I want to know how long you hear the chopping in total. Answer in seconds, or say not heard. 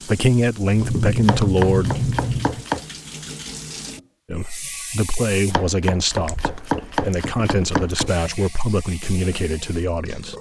4 s.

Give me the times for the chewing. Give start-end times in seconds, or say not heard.
0.8-2.6, 6.1-7.9.